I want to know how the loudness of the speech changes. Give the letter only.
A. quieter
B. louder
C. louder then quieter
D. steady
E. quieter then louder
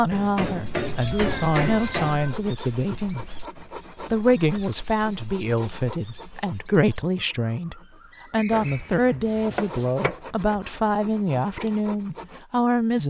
D.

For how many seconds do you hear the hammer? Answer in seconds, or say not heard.
4 s.